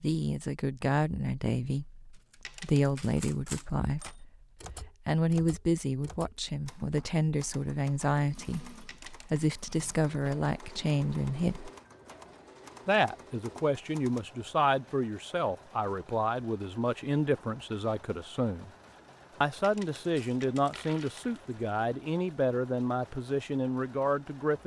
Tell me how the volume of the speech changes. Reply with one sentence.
The loudness of the speech stays about the same.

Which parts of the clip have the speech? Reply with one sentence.
You can hear the speech from 0.0 to 11.7 s, from 12.8 to 18.7 s and from 19.4 to 24.6 s.